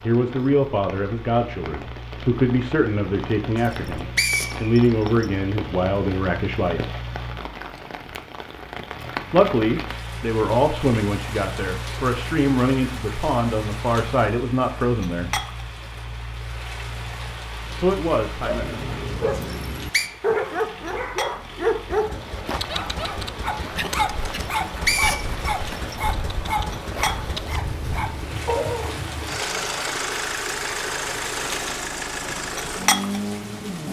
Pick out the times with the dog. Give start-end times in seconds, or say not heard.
18.4-28.9.